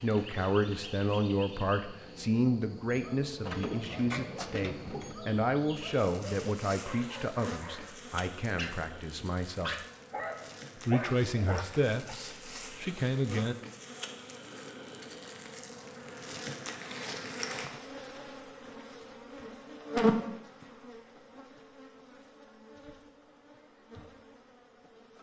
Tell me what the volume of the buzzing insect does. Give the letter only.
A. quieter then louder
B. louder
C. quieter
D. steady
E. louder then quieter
B.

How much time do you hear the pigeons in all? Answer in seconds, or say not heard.
2 s.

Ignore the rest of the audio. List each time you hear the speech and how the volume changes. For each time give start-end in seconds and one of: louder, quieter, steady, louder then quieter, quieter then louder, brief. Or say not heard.
0.0-9.8 quieter
10.8-13.6 brief.